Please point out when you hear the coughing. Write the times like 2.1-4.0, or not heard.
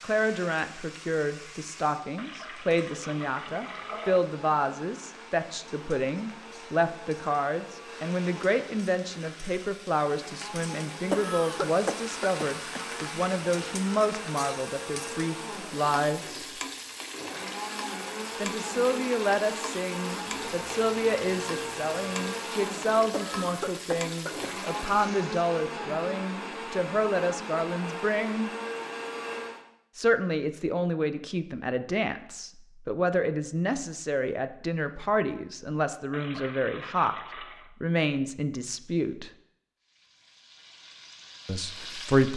11.1-13.2, 23.1-24.5.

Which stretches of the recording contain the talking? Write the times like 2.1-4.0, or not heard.
0.0-16.4, 18.4-28.5, 29.9-37.1, 37.8-39.3, 41.5-42.3.